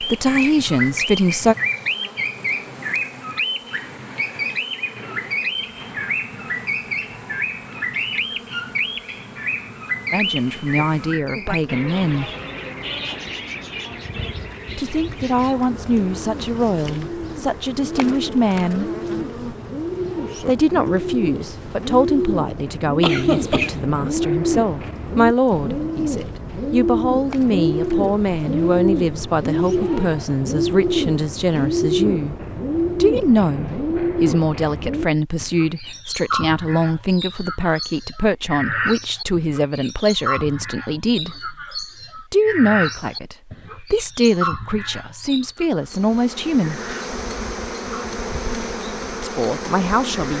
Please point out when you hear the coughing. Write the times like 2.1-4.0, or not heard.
23.0-23.8.